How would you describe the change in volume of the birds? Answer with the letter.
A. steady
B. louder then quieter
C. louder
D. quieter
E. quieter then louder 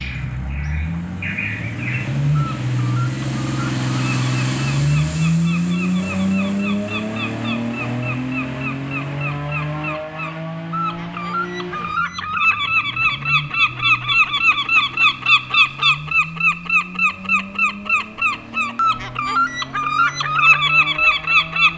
C.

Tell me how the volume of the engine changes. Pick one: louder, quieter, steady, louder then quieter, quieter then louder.
quieter.